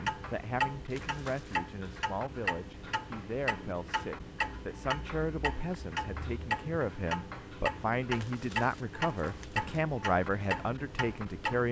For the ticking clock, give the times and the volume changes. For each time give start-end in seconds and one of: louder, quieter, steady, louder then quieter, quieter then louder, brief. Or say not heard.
0.0-11.6 steady.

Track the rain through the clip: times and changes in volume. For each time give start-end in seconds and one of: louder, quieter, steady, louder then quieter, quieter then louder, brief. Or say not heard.
not heard.